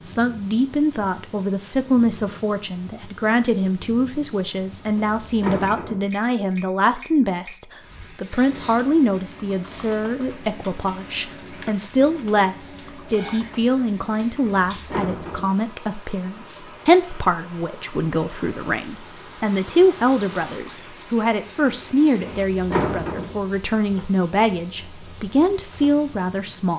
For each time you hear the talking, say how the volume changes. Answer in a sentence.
The talking can be heard from 0.1 to 26.7 s, at a steady volume.